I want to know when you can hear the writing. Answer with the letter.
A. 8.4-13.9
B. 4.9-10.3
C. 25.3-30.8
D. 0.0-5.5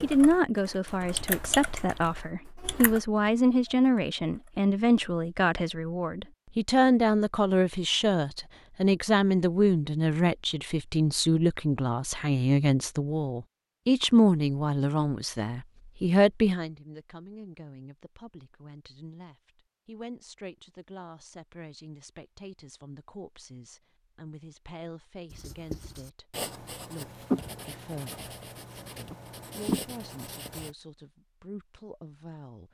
C.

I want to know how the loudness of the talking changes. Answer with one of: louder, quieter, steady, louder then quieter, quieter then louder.
quieter.